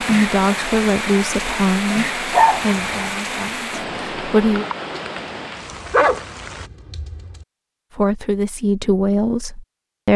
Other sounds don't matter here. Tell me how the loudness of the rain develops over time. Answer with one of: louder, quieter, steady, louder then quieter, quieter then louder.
quieter.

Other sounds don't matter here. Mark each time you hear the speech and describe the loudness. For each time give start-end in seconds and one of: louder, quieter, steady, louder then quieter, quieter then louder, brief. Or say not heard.
0.0-4.7 quieter
8.0-10.1 brief.